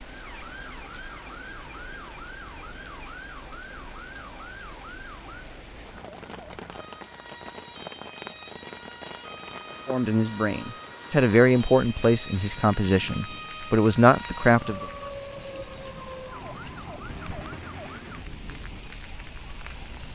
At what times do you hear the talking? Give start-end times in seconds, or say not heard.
9.8-14.8.